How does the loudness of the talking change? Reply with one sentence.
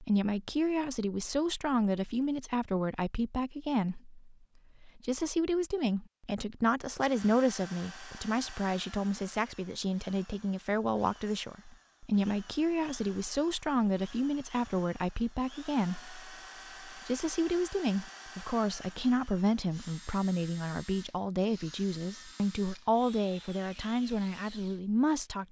The loudness of the talking stays about the same.